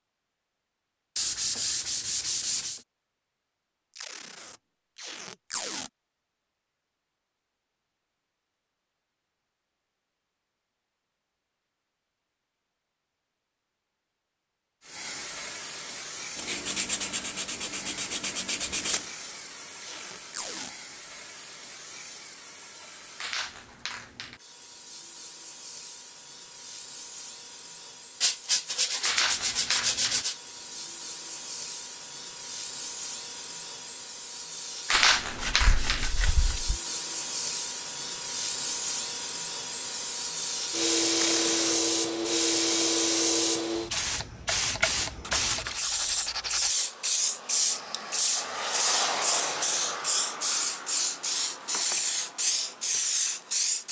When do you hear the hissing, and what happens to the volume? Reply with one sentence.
You can hear the hissing from 14.8 to 53.8 s, getting louder.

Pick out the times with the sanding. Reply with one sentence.
The sanding can be heard from 1.1 to 2.8 s, from 16.4 to 19.1 s, from 28.2 to 30.4 s, from 34.9 to 36.8 s and from 45.2 to 46.8 s.